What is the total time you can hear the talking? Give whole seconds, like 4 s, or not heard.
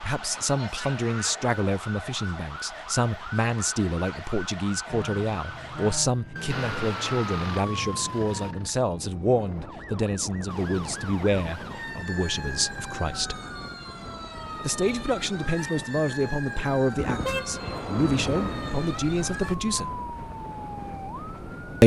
19 s.